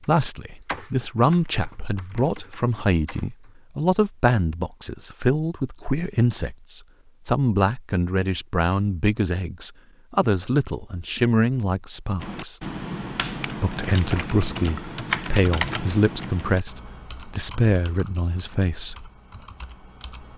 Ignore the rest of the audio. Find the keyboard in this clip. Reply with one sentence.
The keyboard can be heard from 0.0 to 3.5 s and from 12.2 to 20.3 s.